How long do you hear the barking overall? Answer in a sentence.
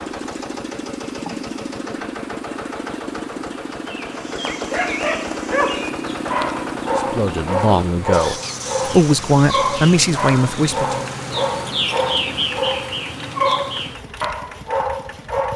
The barking can be heard for 11 seconds in total.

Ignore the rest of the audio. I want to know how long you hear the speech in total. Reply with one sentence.
The speech can be heard for 4 seconds in total.